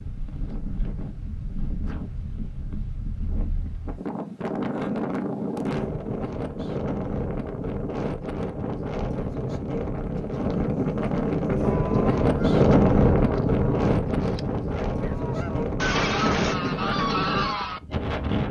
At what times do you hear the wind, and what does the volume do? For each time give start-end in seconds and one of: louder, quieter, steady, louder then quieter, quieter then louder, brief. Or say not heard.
0.0-18.4 louder then quieter.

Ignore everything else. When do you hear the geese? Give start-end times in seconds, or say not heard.
11.6-17.8.